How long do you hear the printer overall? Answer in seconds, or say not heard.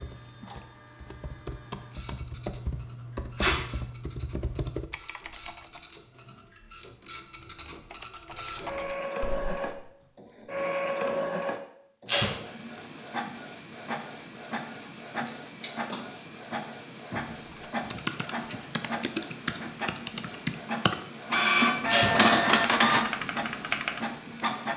25 s.